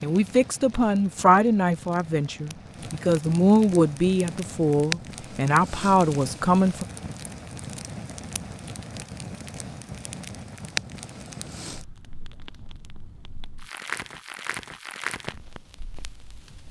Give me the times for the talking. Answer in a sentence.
The talking can be heard from 0.0 to 6.8 s.